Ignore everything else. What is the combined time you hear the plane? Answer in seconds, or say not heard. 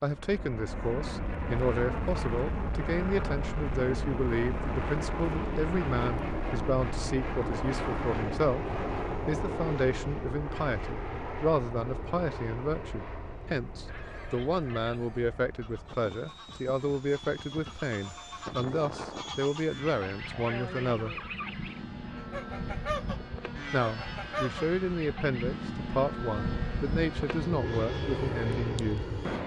29 s.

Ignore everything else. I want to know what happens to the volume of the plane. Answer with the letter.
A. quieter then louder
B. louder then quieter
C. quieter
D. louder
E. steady
A.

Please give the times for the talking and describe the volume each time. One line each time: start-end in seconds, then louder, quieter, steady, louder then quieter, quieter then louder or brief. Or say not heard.
0.0-8.7 steady
9.2-21.2 steady
23.7-29.1 steady.